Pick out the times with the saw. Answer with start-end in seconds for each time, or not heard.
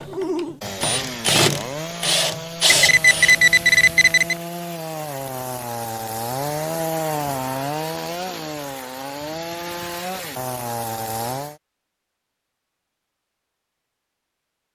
0.1-11.6.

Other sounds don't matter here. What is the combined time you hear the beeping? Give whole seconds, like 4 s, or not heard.
2 s.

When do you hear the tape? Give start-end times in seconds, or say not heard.
not heard.